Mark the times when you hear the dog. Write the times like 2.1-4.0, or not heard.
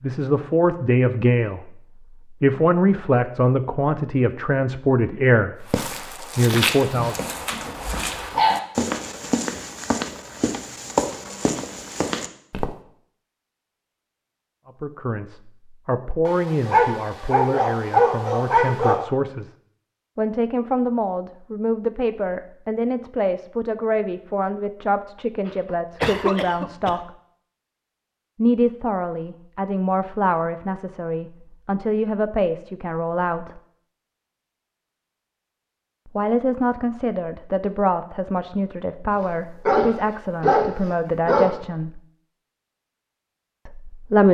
6.9-8.6, 16.2-19.0, 39.1-41.5.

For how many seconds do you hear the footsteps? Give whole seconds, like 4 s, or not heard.
7 s.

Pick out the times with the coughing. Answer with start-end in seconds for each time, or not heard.
25.4-26.9.